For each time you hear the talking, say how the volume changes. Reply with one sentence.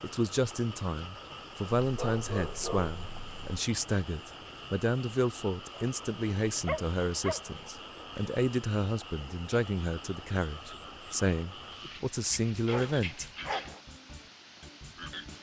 The talking can be heard from 0.0 to 13.2 s, at a steady volume.